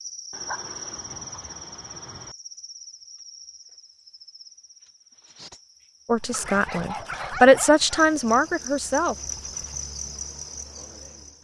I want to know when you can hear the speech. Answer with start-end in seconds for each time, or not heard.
6.0-9.2.